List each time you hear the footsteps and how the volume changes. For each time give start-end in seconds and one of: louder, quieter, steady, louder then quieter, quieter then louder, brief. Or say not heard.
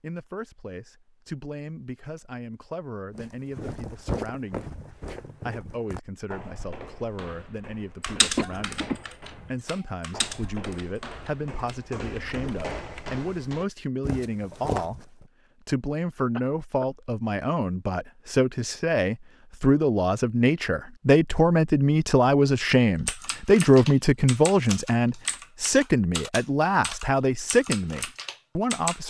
3.1-15.2 quieter then louder.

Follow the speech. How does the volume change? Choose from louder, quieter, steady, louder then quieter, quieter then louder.
louder.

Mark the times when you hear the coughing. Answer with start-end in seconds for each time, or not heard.
8.3-9.0, 16.3-16.9.